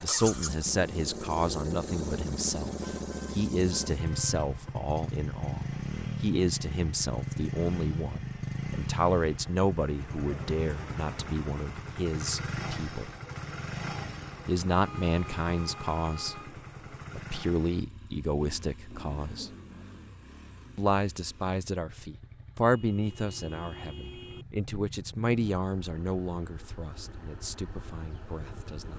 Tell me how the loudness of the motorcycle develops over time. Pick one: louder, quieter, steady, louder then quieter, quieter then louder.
quieter.